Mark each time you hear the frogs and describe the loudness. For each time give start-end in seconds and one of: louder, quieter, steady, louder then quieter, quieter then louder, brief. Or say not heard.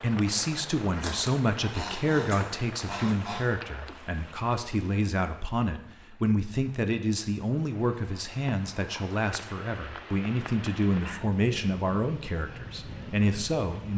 not heard.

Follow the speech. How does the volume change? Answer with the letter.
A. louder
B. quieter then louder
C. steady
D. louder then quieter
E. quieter
C.